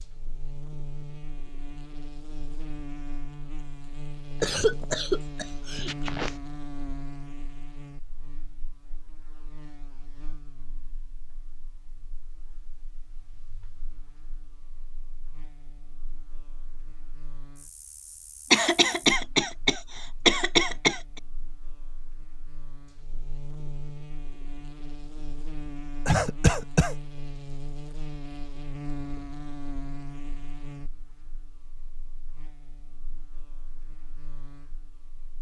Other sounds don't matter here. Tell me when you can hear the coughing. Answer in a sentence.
You can hear the coughing from 4.4 to 6.3 s, from 18.5 to 21.0 s and from 26.1 to 26.9 s.